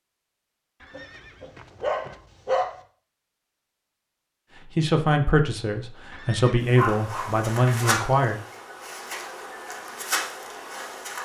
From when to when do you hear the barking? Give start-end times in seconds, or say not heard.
0.9-2.8, 6.8-8.1.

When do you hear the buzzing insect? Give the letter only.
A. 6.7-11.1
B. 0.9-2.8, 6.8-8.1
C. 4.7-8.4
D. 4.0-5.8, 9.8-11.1
A.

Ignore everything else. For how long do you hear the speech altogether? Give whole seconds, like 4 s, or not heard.
4 s.